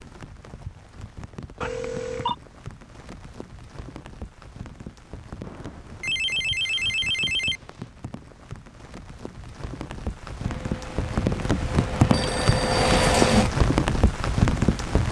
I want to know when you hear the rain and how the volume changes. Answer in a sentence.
The rain can be heard from 0.0 to 15.0 s, getting louder.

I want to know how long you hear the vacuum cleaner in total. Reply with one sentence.
The vacuum cleaner can be heard for 3 seconds in total.